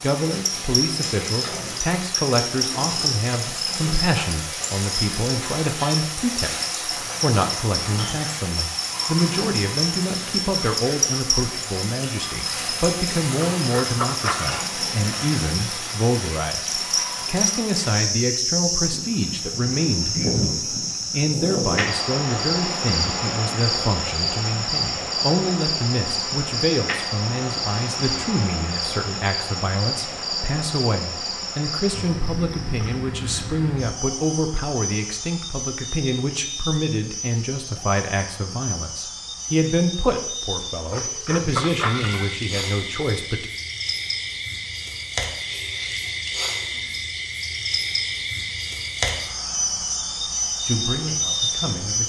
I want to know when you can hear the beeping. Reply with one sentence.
The beeping can't be heard in this clip.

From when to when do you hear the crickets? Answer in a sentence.
You can hear the crickets from 0.0 to 52.0 s.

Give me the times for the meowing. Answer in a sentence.
You can hear the meowing from 13.6 to 14.7 s and from 40.9 to 42.4 s.